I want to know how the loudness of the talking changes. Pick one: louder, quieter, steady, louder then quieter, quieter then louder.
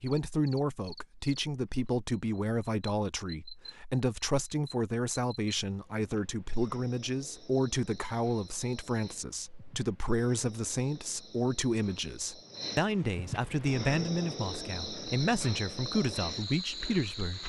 steady.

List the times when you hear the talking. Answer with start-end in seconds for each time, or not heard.
0.0-17.4.